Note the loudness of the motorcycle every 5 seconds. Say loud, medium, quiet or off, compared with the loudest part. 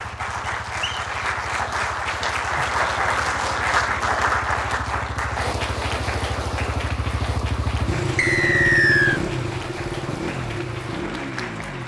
quiet, loud, loud.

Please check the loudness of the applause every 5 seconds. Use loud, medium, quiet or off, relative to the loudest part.
loud, medium, medium.